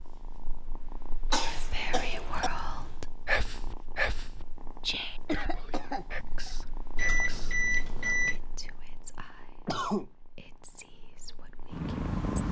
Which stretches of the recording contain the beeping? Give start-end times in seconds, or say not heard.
7.0-8.4.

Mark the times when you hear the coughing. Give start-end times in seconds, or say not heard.
1.3-2.5, 5.2-6.5, 9.7-10.1.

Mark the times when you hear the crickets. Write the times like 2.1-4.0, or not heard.
not heard.